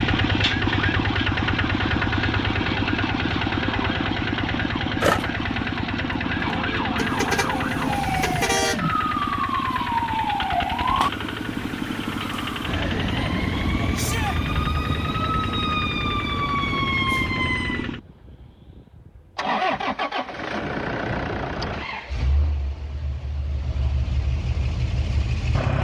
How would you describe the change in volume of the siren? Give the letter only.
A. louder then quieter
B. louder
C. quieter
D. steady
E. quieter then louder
B.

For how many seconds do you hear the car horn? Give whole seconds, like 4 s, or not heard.
2 s.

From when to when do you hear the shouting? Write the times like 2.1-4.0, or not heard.
13.9-14.4.